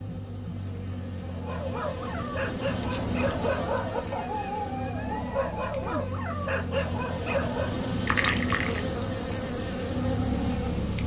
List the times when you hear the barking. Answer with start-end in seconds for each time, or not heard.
1.4-8.0.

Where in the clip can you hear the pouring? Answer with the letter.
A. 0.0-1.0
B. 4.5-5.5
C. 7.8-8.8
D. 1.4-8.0
C.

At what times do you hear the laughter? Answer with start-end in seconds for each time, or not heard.
not heard.